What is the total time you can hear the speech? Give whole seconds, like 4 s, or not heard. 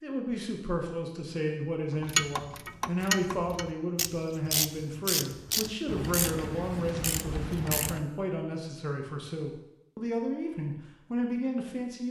12 s.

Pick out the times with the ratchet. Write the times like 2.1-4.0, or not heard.
1.9-8.1.